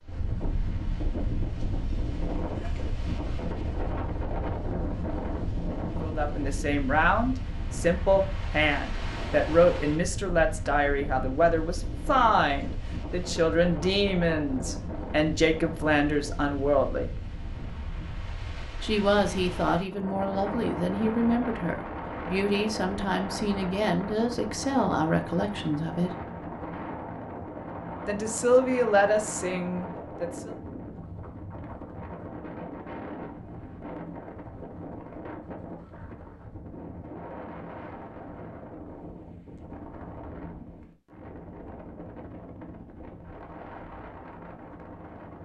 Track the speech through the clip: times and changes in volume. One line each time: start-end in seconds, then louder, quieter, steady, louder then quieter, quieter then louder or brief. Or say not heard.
6.0-17.2 steady
18.8-26.1 steady
28.1-30.5 brief.